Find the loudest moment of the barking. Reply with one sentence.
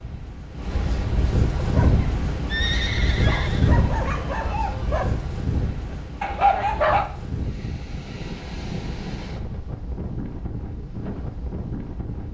The loudest moment of the barking is at 7 seconds.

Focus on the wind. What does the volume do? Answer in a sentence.
The volume of the wind goes down.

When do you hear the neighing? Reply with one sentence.
You can hear the neighing from 2.5 to 3.7 s.